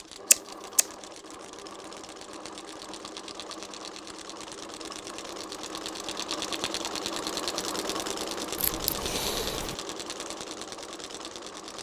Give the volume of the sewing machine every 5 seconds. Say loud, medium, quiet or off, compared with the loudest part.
medium, loud, medium.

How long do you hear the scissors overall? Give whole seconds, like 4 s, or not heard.
2 s.